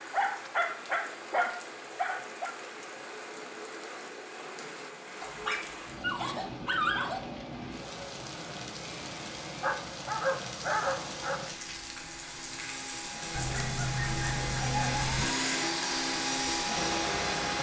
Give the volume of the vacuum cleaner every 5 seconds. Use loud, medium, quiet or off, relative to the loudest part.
quiet, quiet, medium, loud.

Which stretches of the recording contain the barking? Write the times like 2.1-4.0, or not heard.
0.1-2.5, 5.2-7.2, 9.6-11.5, 13.3-15.2.